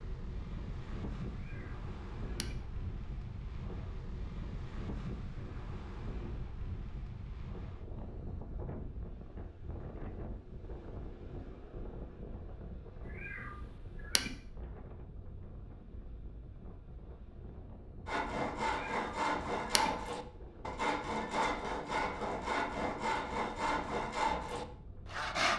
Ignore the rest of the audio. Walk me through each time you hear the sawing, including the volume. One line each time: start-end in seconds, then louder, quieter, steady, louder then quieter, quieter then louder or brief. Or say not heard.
18.1-25.5 steady.